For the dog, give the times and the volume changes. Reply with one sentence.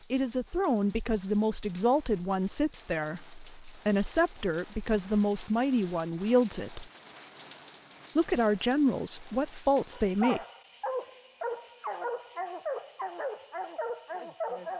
The dog can be heard from 9.9 to 14.7 s, at a steady volume.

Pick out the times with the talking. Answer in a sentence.
The talking can be heard from 0.1 to 6.8 s and from 8.2 to 10.4 s.